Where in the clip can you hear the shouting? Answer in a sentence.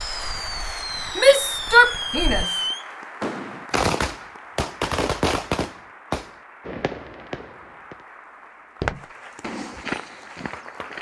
You can hear the shouting from 1.1 to 2.5 s.